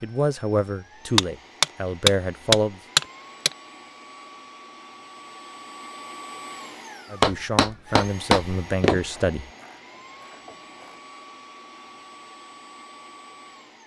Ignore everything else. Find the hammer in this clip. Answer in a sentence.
The hammer can be heard from 1.1 to 3.5 s and from 7.2 to 9.0 s.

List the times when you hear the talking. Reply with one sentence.
You can hear the talking from 0.0 to 2.8 s and from 7.1 to 9.5 s.